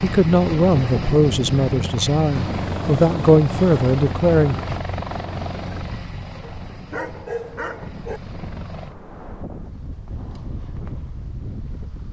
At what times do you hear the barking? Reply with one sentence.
You can hear the barking from 6.4 to 8.2 s.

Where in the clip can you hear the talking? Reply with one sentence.
The talking can be heard from 0.0 to 4.5 s.